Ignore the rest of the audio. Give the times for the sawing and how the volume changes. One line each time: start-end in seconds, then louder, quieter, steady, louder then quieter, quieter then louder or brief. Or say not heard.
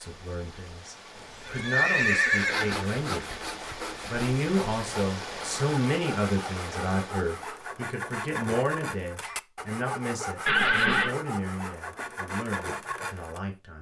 2.4-13.4 steady.